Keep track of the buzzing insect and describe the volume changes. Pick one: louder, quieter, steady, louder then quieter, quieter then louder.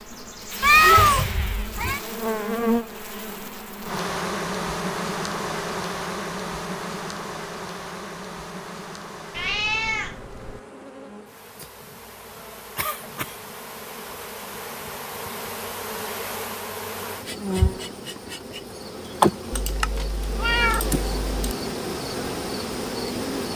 quieter then louder.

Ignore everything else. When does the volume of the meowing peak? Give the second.
1 s.